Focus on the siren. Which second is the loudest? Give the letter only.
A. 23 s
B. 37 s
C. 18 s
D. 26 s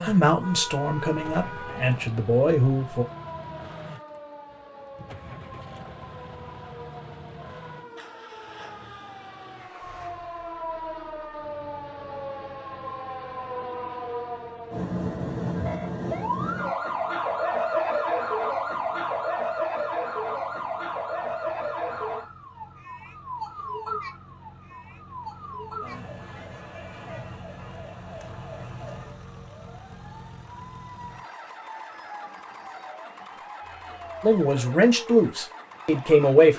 C.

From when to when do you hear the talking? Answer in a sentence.
The talking can be heard from 0.0 to 3.0 s and from 34.2 to 36.5 s.